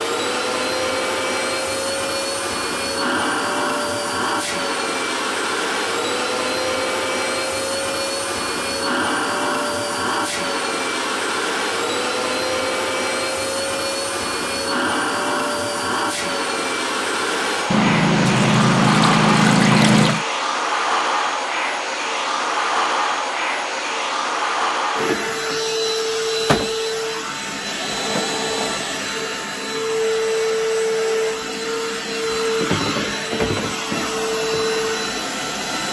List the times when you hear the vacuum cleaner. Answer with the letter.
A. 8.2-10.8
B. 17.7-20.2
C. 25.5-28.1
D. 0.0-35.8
D.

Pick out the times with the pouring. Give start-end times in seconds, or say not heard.
17.7-20.2.